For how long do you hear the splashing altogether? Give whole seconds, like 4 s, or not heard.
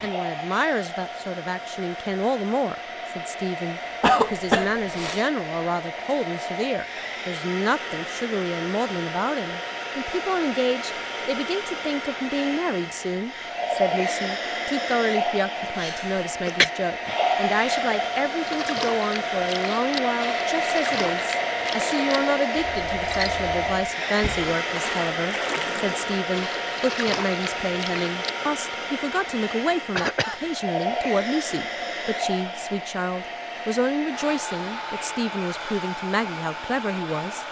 10 s.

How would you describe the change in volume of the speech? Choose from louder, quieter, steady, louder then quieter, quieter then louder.
steady.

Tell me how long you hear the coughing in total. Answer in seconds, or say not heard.
3 s.